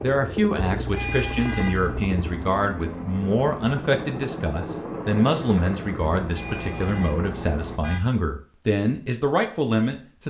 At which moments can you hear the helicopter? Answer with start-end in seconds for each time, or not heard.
0.0-7.8.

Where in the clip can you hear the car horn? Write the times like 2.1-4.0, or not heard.
0.6-2.1, 6.2-8.0.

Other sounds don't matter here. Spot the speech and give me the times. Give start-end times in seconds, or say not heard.
0.0-10.2.